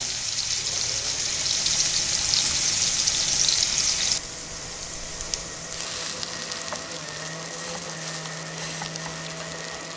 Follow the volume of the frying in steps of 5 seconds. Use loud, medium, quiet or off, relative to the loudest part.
loud, medium.